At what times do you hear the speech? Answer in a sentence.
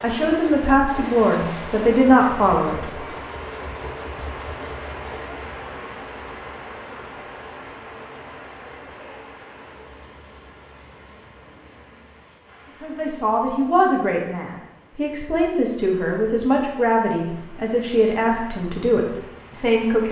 You can hear the speech from 0.0 to 2.9 s and from 12.8 to 20.0 s.